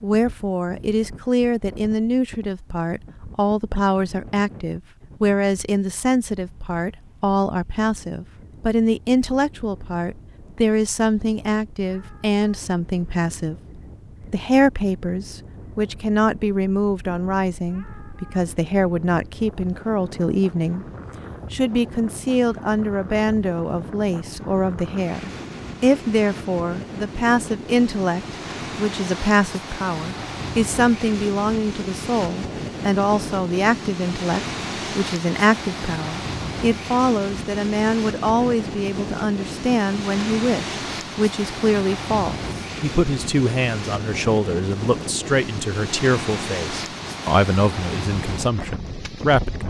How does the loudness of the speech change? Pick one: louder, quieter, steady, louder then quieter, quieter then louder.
steady.